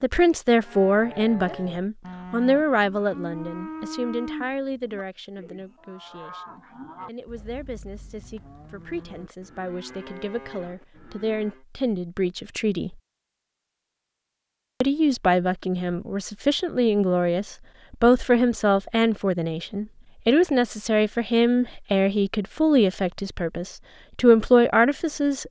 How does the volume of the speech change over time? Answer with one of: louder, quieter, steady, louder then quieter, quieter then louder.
quieter then louder.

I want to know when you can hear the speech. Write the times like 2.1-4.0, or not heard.
0.0-12.9, 14.8-25.4.